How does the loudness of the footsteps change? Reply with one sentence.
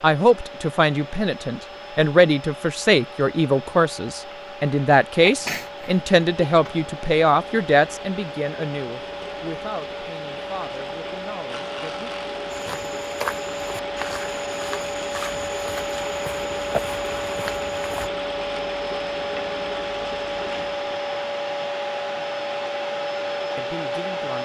The loudness of the footsteps goes down, then up.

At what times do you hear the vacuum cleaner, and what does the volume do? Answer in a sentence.
You can hear the vacuum cleaner from 0.0 to 24.4 s, getting louder.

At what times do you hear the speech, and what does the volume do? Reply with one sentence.
The speech can be heard from 0.0 to 12.1 s, getting quieter; and briefly from 23.6 to 24.4 s.